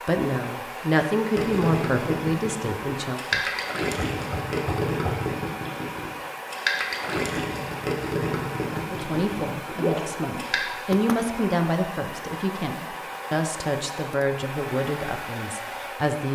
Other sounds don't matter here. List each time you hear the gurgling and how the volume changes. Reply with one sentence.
The gurgling can be heard from 1.3 to 10.6 s, at a steady volume.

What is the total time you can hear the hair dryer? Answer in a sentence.
The hair dryer can be heard for 16 seconds in total.